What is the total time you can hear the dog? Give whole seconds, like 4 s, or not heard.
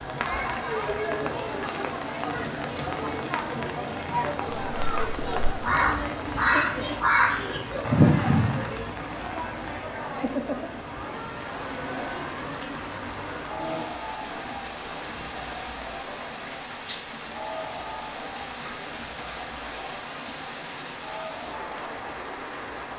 not heard.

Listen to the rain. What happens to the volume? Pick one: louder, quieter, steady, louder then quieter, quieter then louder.
steady.